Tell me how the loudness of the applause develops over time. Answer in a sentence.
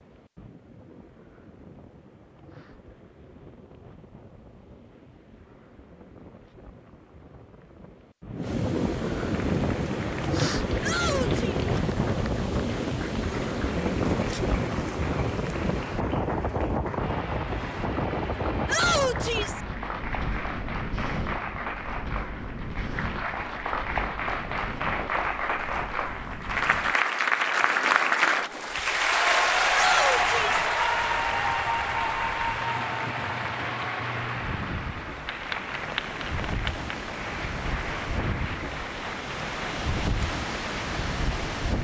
The volume of the applause goes up, then down.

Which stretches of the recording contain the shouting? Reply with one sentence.
The shouting can be heard from 10.8 to 11.6 s, from 18.6 to 19.6 s and from 29.7 to 30.6 s.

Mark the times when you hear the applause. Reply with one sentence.
The applause can be heard from 9.3 to 41.7 s.